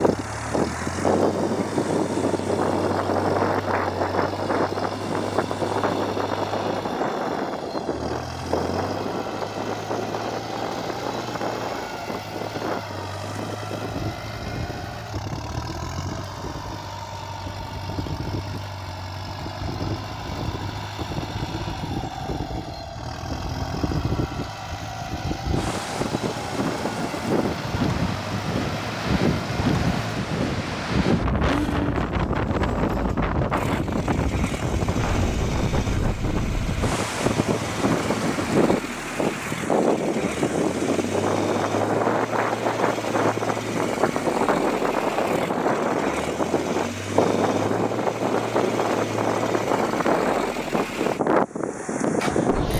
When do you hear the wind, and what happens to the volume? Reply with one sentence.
The wind can be heard from 0.0 to 52.7 s, getting quieter then louder.